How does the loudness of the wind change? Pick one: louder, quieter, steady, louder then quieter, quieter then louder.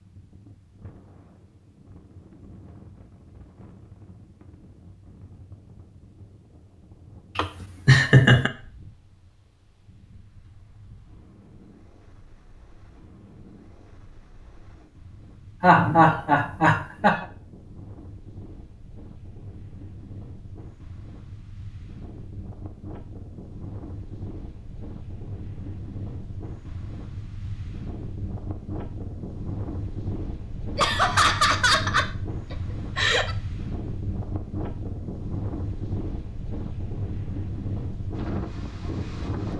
louder.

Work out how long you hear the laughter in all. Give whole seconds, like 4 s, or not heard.
5 s.